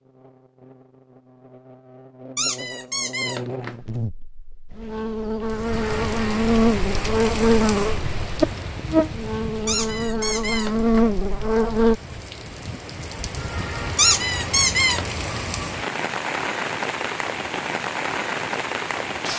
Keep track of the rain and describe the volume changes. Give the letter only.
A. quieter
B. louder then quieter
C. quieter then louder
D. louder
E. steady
C.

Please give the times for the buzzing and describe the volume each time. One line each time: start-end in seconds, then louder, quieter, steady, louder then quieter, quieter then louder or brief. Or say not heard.
0.0-12.0 louder.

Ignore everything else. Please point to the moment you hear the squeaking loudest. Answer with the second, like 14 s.
14 s.